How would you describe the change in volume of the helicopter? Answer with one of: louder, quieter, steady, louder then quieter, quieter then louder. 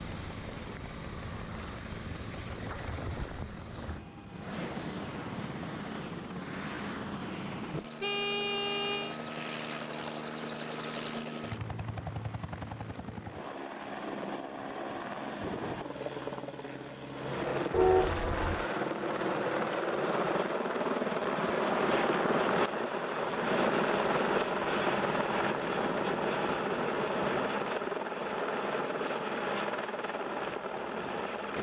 louder.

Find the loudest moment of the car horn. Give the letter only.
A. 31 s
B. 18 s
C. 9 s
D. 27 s
B.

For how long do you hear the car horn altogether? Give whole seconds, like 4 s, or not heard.
2 s.